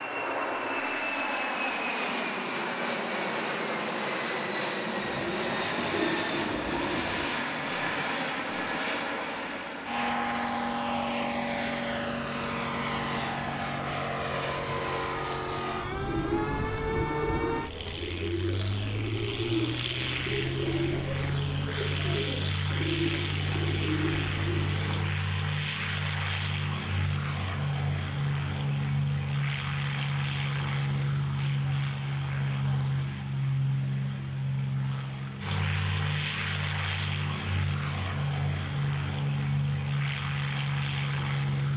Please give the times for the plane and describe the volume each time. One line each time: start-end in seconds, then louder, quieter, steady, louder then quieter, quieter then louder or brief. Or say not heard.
0.0-41.7 steady.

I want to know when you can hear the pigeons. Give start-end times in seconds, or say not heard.
5.0-7.4, 16.0-25.1.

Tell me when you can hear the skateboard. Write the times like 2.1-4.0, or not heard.
not heard.